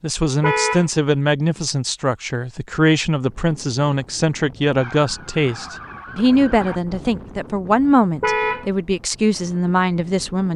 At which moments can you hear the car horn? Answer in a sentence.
You can hear the car horn from 0.4 to 0.9 s and from 8.2 to 8.7 s.